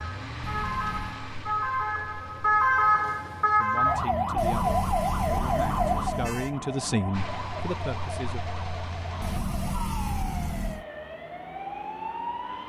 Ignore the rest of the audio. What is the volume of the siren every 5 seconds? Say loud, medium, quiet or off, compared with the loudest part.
loud, medium, medium.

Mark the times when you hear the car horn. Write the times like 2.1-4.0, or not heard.
0.4-1.2, 4.3-6.6, 9.2-10.8.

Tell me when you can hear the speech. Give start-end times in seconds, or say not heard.
3.5-8.4.